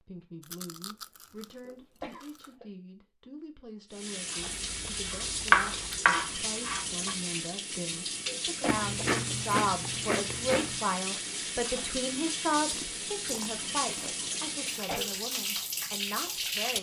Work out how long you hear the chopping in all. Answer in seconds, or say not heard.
2 s.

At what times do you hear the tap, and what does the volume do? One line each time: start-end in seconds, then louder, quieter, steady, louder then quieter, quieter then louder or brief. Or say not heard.
3.9-16.7 steady.